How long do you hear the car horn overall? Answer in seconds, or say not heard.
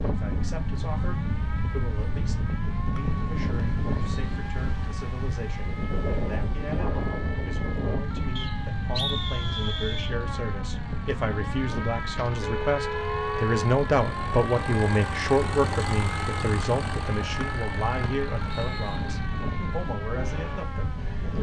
2 s.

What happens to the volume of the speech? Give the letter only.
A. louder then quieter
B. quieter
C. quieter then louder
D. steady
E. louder
A.